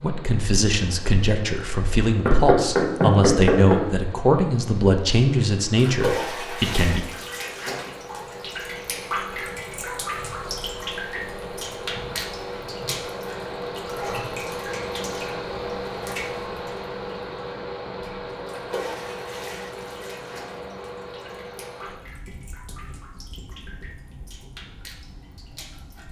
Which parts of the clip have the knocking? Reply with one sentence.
You can hear the knocking from 2.2 to 3.9 s.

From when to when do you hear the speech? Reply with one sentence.
The speech can be heard from 0.0 to 7.0 s.